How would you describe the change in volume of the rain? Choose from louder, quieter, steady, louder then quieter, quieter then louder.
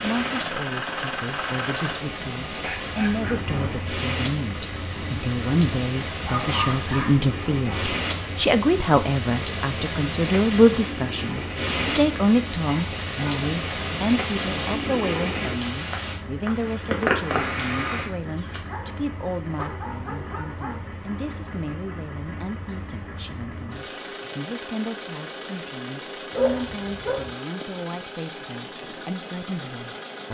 louder.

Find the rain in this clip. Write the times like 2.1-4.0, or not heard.
0.0-18.1.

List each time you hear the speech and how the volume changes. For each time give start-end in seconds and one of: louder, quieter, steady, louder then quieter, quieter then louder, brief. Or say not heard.
0.0-30.2 louder then quieter.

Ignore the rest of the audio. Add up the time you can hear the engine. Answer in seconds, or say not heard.
30 s.